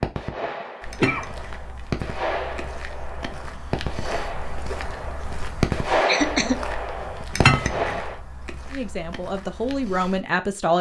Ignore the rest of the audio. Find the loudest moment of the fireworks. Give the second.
6 s.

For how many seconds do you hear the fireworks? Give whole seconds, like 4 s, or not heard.
8 s.